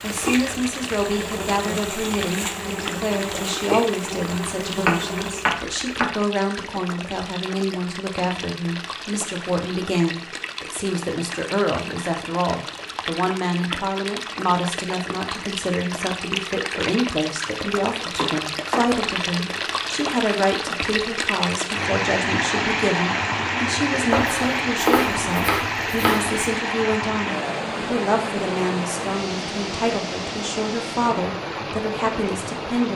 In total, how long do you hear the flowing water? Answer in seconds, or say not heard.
33 s.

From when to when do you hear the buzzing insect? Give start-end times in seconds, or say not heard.
0.0-5.6.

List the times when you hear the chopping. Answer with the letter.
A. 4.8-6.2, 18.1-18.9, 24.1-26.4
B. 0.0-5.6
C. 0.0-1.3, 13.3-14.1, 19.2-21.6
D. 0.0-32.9
A.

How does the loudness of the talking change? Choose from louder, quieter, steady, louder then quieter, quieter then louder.
steady.